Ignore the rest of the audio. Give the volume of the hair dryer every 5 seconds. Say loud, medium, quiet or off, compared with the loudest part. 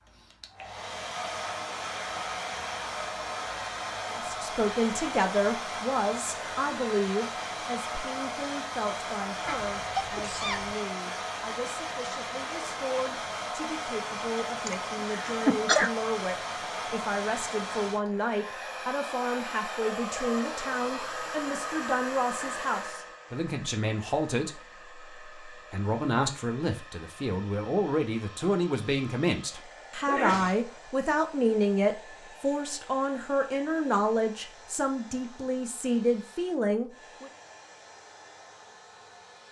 loud, loud, loud, loud, loud, quiet, quiet, quiet.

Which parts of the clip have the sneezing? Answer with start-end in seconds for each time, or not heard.
9.4-10.8, 14.7-15.9, 30.1-30.6.